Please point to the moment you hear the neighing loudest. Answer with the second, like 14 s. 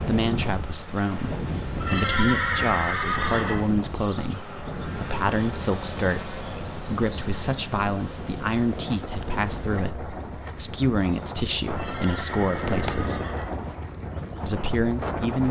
2 s.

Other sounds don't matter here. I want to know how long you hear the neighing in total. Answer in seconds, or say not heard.
4 s.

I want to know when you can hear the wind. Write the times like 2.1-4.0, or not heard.
0.0-15.4.